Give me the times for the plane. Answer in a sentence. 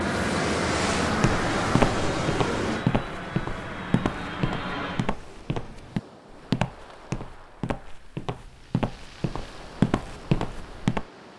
The plane can be heard from 0.0 to 5.2 s.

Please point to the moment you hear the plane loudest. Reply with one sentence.
The volume of the plane peaks at 1 second.